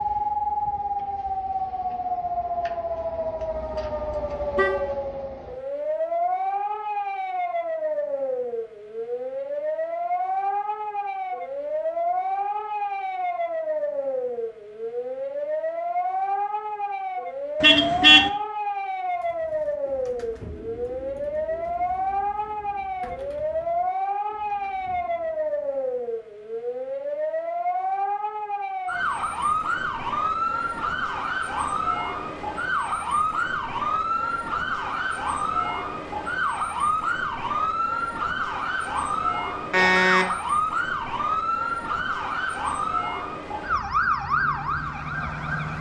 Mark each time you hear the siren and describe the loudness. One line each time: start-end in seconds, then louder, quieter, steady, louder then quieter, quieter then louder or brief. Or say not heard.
0.0-45.7 steady.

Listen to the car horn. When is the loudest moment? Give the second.
18 s.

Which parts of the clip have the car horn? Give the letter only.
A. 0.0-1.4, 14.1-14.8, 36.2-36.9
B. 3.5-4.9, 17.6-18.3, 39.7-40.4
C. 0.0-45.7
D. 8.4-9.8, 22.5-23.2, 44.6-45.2
B.